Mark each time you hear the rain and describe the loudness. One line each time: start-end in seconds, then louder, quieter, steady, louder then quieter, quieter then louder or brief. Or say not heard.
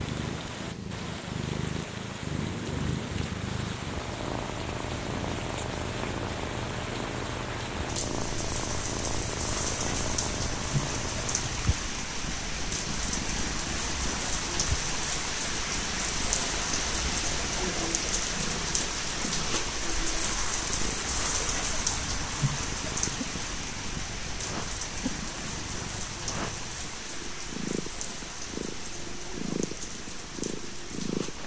0.0-31.4 louder then quieter.